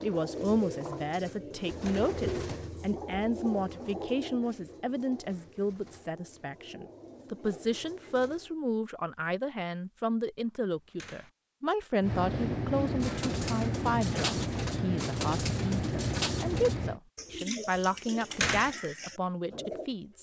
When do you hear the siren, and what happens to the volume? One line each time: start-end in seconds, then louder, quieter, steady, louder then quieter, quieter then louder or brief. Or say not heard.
not heard.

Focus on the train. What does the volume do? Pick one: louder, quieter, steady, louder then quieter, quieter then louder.
steady.